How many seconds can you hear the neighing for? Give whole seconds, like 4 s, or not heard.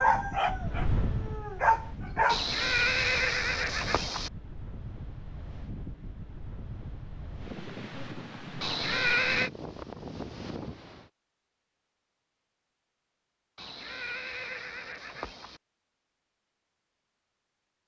5 s.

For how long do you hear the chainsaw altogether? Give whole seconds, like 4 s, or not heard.
not heard.